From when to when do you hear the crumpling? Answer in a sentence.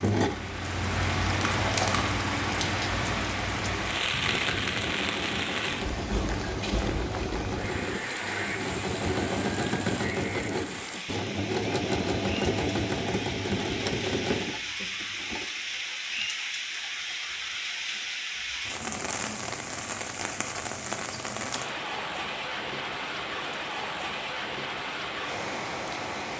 The crumpling can be heard from 1.2 to 2.2 s.